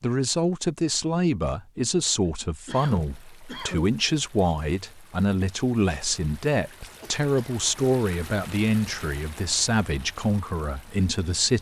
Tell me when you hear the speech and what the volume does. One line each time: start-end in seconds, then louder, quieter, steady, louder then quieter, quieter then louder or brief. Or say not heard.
0.0-11.5 steady.